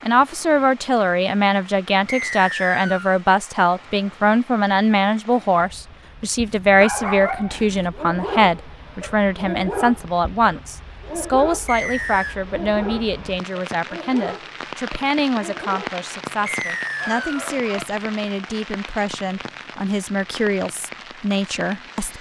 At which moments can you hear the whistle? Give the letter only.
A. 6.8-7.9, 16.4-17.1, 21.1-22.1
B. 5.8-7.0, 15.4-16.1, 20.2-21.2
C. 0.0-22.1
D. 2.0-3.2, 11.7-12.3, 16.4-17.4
D.